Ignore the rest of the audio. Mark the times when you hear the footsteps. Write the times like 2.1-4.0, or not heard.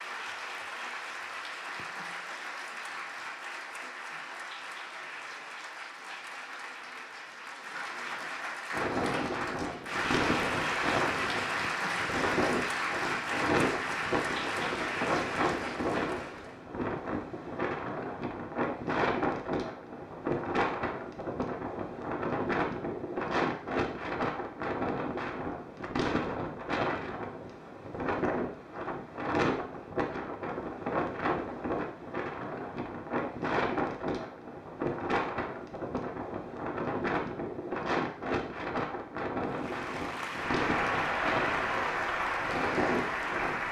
not heard.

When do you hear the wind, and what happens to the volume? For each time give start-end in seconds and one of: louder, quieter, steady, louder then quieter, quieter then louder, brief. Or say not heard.
8.7-43.6 steady.